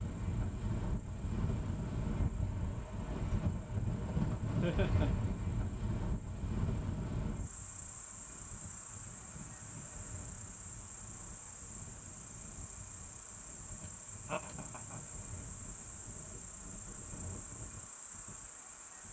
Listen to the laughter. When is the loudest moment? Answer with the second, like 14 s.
5 s.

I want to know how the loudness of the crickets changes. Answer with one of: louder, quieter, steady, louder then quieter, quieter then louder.
louder.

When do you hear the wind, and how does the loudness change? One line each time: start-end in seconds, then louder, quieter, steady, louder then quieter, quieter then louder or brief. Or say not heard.
0.0-19.0 quieter.